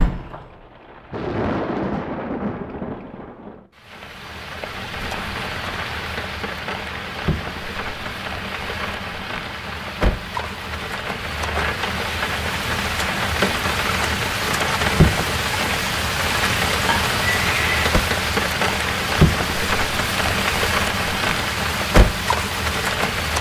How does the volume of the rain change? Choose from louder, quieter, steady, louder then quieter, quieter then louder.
louder.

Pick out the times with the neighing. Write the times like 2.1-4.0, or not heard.
16.9-17.9.